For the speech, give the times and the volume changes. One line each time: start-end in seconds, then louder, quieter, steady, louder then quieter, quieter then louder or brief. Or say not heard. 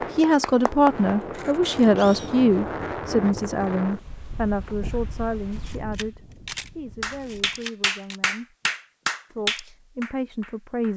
0.1-8.6 quieter
9.2-10.9 brief.